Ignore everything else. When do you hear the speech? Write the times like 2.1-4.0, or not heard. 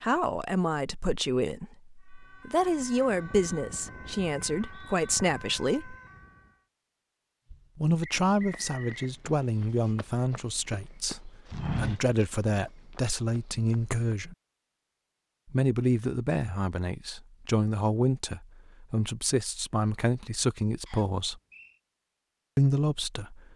0.0-6.0, 7.8-14.3, 15.5-21.4, 22.6-23.5.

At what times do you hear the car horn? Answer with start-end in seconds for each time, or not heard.
not heard.